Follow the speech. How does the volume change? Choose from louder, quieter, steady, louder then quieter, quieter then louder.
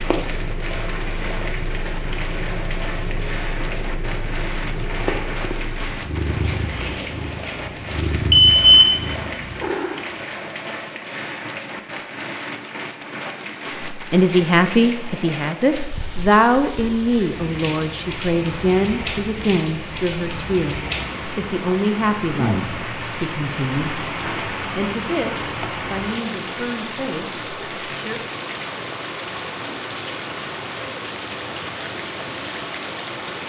quieter.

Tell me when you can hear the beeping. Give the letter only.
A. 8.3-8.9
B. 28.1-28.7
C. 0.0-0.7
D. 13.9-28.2
A.